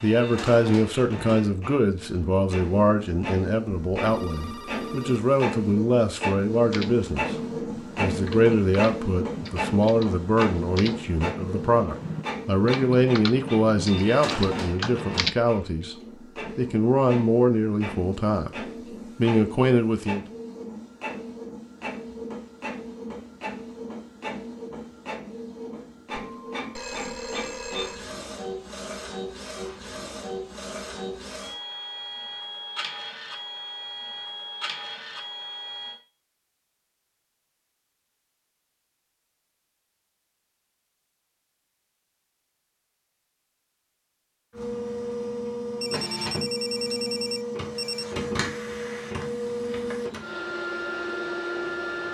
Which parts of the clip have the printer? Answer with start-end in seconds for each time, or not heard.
0.0-36.0, 44.5-52.0.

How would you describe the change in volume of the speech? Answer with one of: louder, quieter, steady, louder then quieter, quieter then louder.
steady.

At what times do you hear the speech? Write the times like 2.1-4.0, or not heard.
0.0-20.2.